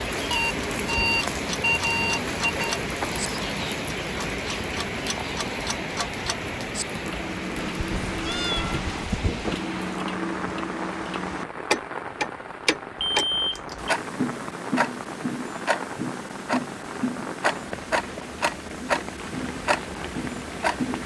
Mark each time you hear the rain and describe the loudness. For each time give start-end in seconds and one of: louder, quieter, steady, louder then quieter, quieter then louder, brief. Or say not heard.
0.0-21.0 quieter.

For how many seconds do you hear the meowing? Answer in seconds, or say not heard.
2 s.